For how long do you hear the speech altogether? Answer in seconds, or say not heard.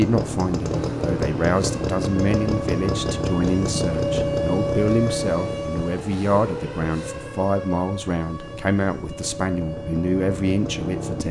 11 s.